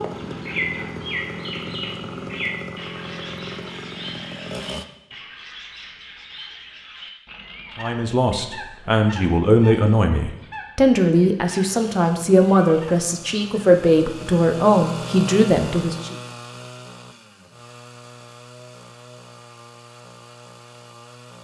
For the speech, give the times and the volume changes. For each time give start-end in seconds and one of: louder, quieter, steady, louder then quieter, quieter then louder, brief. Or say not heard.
7.8-16.1 steady.